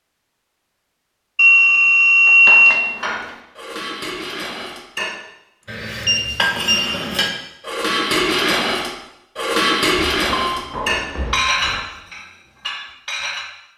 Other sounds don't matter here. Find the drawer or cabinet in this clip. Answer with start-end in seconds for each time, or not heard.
not heard.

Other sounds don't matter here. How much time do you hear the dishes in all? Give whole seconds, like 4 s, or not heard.
11 s.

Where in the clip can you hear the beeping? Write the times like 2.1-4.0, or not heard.
1.4-2.9, 5.6-6.9, 10.1-11.8.